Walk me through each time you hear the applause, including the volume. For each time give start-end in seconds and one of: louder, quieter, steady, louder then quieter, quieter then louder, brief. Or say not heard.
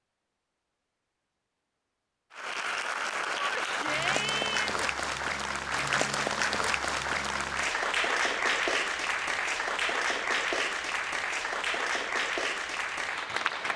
2.3-13.7 steady.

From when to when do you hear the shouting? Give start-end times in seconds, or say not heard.
3.4-4.9.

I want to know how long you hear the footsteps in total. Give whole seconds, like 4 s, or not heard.
not heard.